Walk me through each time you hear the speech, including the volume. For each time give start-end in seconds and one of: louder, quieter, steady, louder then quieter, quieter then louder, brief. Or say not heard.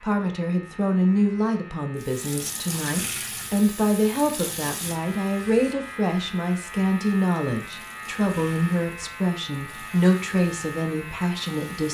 0.0-11.8 steady.